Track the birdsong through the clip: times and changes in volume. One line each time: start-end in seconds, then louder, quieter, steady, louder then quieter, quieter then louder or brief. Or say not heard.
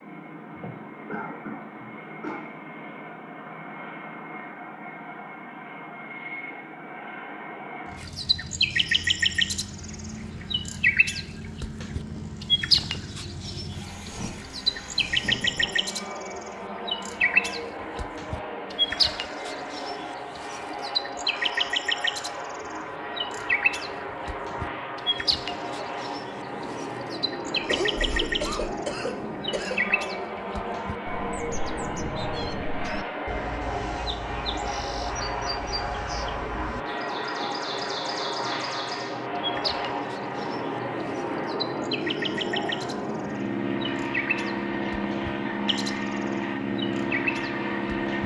8.0-48.2 quieter.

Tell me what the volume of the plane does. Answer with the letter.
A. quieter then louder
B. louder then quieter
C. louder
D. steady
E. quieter
C.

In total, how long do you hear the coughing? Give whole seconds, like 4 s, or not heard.
5 s.